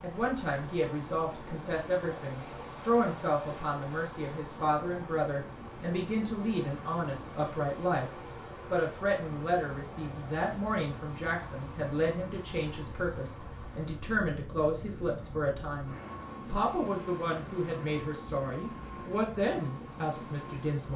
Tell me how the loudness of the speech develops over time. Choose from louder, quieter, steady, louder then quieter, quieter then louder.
steady.